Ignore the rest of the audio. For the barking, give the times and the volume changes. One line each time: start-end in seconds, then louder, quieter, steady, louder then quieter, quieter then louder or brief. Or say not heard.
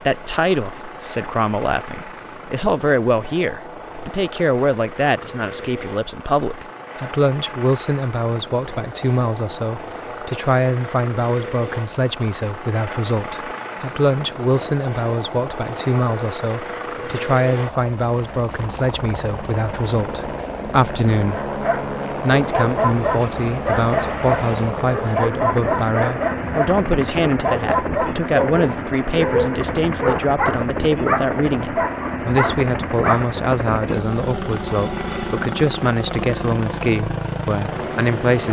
21.4-33.3 steady.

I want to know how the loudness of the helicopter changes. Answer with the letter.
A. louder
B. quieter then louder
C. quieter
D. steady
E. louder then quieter
A.